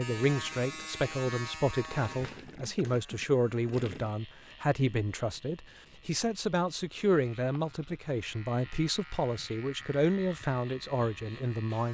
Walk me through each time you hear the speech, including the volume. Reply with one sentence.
The speech can be heard from 0.0 to 11.8 s, at a steady volume.